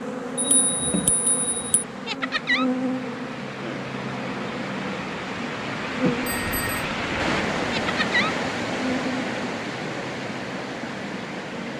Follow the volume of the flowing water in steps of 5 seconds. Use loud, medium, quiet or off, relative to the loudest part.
medium, loud, medium.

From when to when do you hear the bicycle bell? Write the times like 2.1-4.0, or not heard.
0.3-1.9, 6.2-6.8.